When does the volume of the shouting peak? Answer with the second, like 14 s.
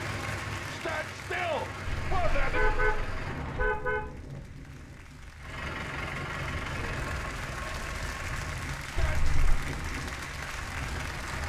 1 s.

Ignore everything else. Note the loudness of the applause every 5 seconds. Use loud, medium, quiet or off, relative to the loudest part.
medium, loud, loud.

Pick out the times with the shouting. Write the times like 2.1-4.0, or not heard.
0.7-2.6, 8.8-9.3.